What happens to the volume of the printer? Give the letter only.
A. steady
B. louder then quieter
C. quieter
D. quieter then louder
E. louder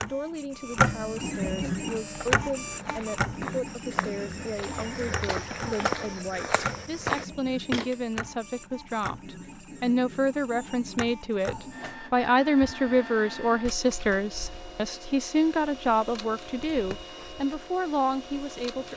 C.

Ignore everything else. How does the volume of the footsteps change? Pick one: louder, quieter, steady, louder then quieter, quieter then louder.
louder.